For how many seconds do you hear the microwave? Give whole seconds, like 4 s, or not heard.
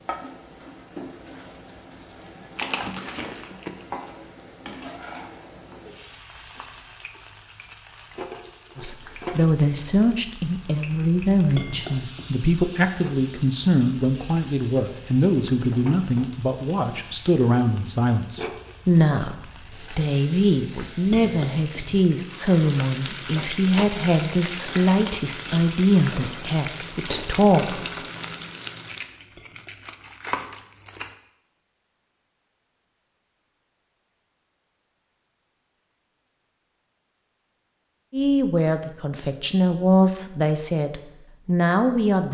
not heard.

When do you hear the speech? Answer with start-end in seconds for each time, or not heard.
8.8-27.8, 38.1-42.2.